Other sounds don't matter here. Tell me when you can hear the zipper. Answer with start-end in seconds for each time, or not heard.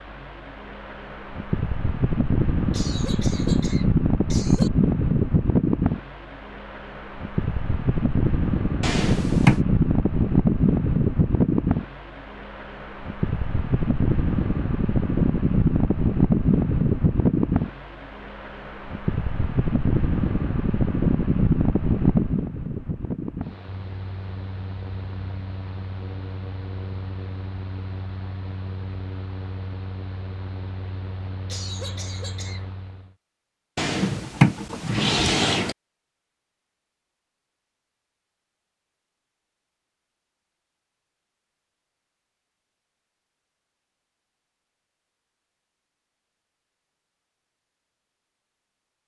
not heard.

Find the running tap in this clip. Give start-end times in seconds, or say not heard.
not heard.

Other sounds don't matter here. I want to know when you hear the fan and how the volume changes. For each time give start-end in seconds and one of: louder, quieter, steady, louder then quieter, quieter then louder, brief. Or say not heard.
0.0-33.1 quieter.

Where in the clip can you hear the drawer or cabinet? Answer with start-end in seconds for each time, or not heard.
8.8-9.6, 33.8-35.8.